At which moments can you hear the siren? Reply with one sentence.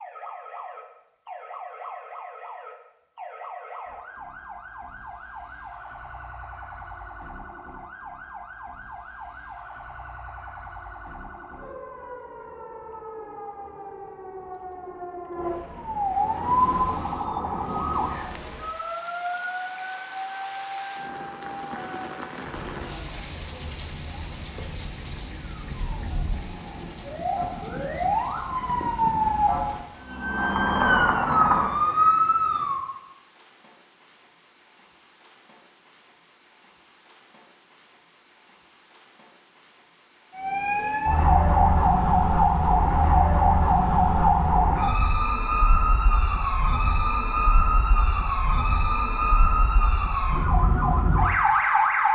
You can hear the siren from 0.0 to 32.9 s and from 40.4 to 52.1 s.